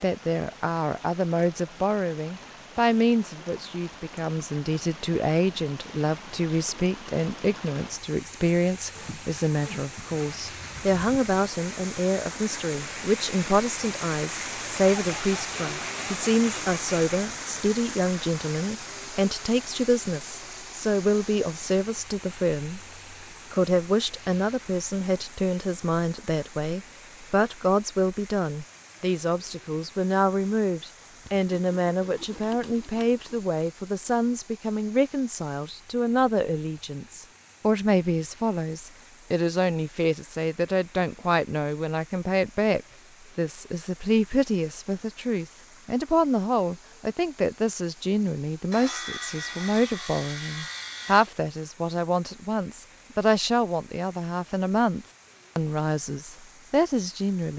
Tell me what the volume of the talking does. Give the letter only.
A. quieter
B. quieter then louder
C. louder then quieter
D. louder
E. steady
E.